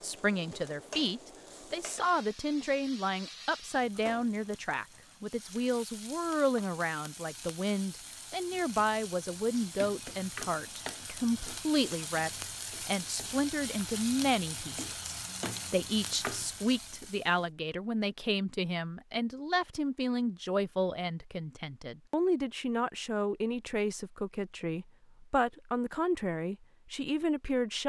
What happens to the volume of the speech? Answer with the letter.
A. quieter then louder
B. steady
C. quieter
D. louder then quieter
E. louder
B.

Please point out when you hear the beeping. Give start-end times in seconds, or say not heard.
not heard.